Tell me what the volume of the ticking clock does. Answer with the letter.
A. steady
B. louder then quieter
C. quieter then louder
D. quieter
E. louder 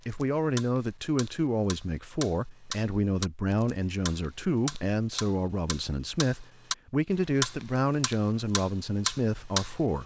E.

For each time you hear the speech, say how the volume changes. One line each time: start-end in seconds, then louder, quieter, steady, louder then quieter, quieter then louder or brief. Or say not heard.
0.1-10.0 steady.